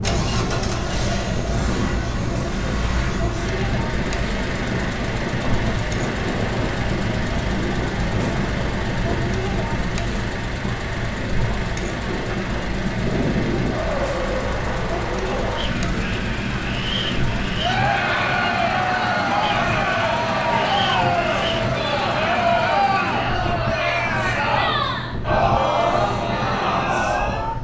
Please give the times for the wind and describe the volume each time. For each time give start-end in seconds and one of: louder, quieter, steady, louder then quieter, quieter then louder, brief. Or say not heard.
0.0-27.5 steady.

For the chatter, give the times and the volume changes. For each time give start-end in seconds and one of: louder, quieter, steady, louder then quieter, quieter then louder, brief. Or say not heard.
0.0-27.5 louder.